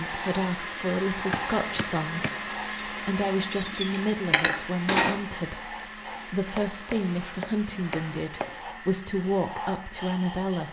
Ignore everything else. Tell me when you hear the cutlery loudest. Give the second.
5 s.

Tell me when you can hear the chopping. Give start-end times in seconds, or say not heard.
1.3-2.4, 6.5-8.6.